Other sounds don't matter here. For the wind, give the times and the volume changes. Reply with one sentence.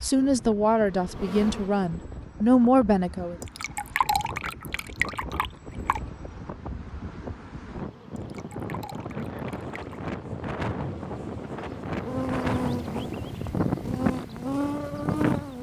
The wind can be heard from 0.0 to 15.5 s, getting louder.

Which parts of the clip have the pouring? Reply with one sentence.
The pouring can be heard from 3.4 to 6.0 s and from 8.2 to 10.1 s.